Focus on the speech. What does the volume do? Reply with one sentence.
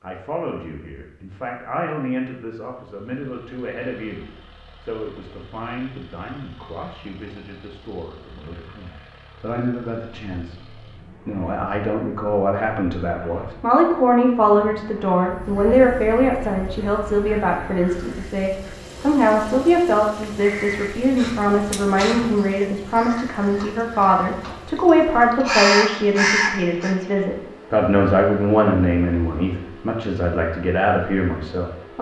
The volume of the speech goes up.